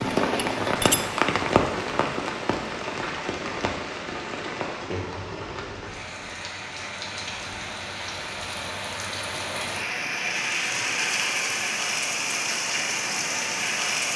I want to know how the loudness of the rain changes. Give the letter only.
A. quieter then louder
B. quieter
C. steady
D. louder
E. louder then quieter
A.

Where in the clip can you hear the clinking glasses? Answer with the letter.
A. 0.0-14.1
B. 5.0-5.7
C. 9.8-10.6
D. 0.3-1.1
D.